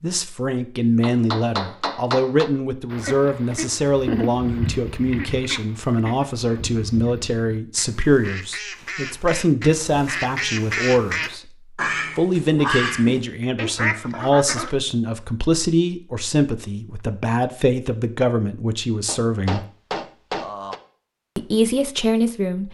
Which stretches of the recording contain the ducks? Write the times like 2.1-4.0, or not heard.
2.9-14.8.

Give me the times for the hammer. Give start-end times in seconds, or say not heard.
1.0-2.5, 19.1-20.8.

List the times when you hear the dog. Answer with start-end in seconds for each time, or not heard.
not heard.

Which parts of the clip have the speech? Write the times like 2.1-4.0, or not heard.
0.0-11.5, 12.2-19.6, 21.4-22.6.